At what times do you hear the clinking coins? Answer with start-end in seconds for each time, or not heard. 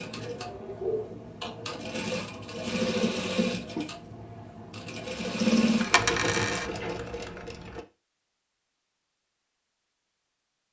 5.8-6.7.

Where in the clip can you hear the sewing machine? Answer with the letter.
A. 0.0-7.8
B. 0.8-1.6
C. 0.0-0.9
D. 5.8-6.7
A.